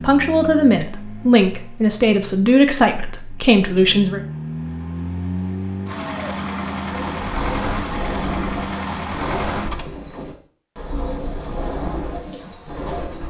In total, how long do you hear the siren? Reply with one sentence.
You can't hear the siren here.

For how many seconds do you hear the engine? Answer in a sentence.
The engine can be heard for 10 seconds in total.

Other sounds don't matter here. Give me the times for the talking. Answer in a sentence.
The talking can be heard from 0.0 to 4.2 s.